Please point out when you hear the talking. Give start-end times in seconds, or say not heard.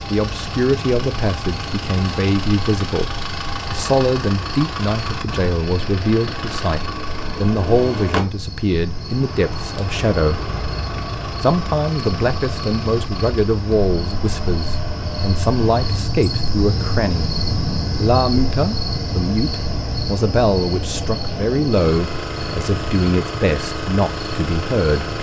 0.1-10.4, 11.4-17.3, 17.9-25.1.